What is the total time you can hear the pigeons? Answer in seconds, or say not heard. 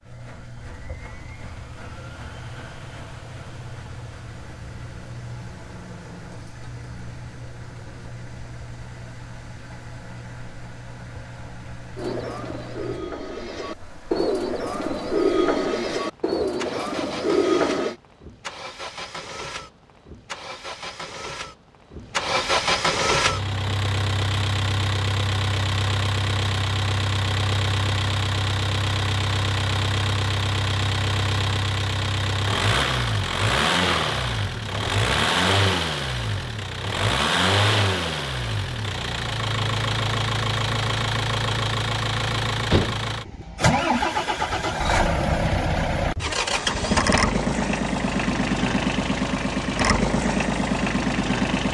6 s.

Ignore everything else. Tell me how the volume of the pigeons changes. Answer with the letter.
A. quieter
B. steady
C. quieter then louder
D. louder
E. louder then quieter
D.